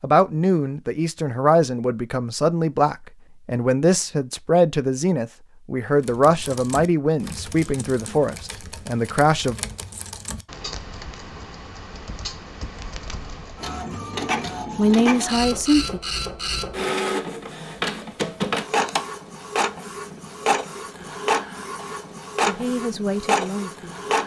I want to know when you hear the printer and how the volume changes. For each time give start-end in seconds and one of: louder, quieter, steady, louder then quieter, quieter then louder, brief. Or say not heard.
13.6-24.2 steady.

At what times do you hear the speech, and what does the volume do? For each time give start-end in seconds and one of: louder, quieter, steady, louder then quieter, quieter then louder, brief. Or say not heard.
0.0-9.6 steady
14.8-16.0 brief
22.4-24.1 brief.